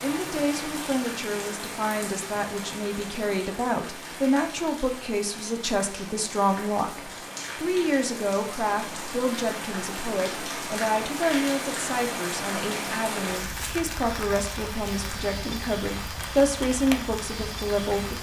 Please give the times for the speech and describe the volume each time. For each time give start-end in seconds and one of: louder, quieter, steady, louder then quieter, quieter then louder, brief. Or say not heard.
0.0-18.1 steady.